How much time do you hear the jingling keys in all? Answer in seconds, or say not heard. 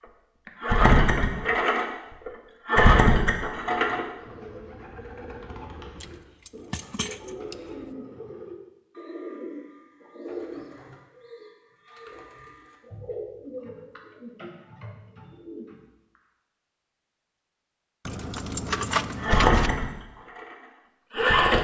3 s.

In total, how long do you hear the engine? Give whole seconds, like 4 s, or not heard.
6 s.